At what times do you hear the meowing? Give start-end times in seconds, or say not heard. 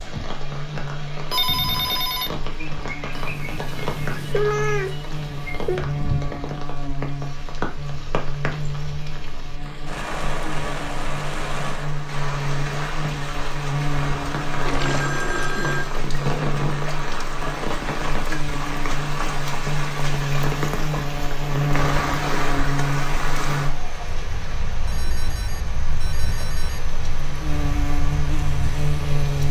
3.1-5.8.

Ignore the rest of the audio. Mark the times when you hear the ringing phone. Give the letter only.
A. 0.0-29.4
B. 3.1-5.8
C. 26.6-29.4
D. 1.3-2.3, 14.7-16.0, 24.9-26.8
D.